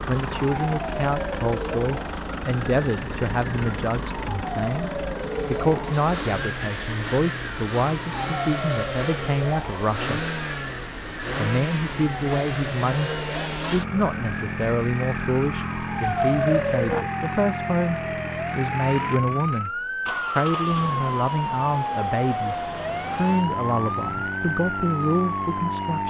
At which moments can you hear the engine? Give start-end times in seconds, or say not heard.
0.0-26.0.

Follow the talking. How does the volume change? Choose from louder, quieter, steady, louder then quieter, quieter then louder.
steady.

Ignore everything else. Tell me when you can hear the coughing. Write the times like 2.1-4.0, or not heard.
not heard.